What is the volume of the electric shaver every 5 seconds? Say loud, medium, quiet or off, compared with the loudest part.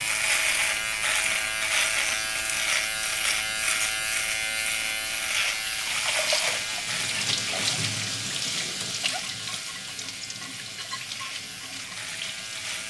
loud, medium, quiet.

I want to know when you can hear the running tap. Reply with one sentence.
You can hear the running tap from 5.5 to 12.8 s.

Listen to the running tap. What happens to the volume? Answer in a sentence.
The volume of the running tap goes down.